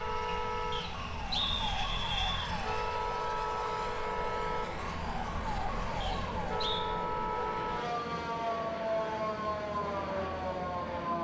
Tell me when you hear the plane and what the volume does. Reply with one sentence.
The plane can be heard from 0.0 to 11.2 s, at a steady volume.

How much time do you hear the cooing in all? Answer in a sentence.
You can't hear the cooing here.